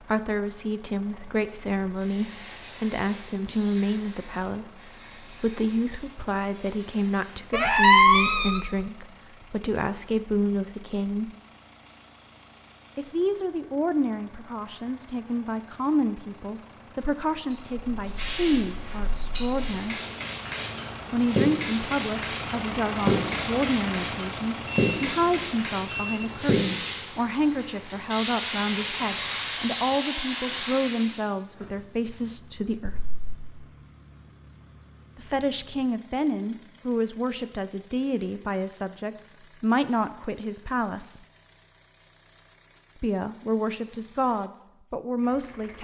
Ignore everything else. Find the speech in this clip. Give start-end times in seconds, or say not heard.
0.1-11.3, 12.9-20.0, 21.1-33.0, 35.1-41.2, 43.0-45.7.